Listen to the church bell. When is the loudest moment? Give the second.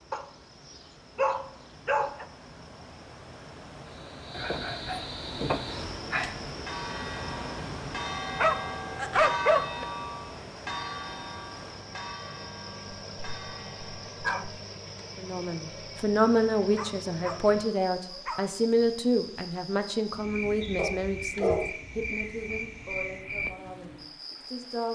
9 s.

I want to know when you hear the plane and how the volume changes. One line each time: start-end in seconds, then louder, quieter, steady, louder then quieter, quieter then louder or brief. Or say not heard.
not heard.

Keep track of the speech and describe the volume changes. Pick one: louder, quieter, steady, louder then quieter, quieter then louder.
quieter.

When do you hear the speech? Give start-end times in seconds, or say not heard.
15.2-24.9.